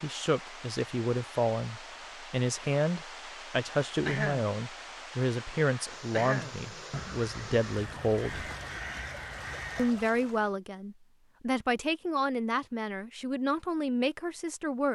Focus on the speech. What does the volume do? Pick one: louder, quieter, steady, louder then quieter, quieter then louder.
steady.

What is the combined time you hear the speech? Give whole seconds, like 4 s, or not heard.
14 s.